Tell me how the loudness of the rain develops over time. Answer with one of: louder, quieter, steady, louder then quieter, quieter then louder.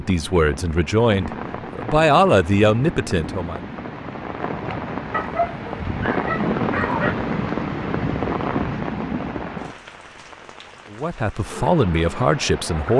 louder then quieter.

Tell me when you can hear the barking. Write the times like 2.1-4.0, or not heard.
5.1-7.2.